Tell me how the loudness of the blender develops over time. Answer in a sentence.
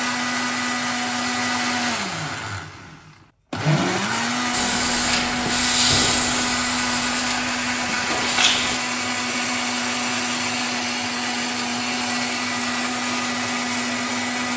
The volume of the blender stays about the same.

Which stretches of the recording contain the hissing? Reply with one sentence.
The hissing can be heard from 4.5 to 8.8 s.